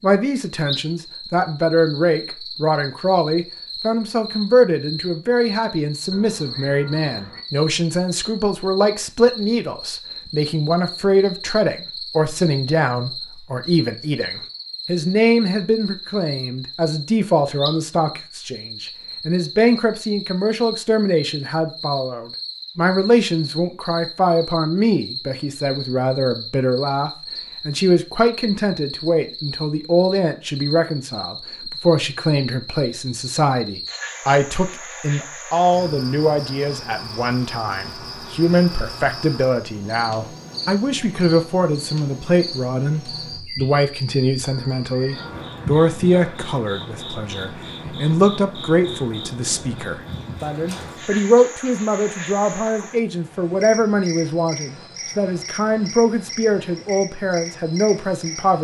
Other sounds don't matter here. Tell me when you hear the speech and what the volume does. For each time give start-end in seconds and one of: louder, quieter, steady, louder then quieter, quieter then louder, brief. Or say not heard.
0.0-58.6 steady.